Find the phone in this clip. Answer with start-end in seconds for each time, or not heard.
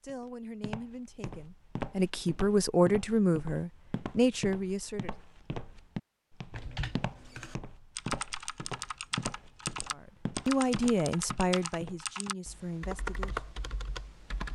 not heard.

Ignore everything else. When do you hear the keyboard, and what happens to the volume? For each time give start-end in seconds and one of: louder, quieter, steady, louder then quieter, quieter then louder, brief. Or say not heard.
6.5-14.4 steady.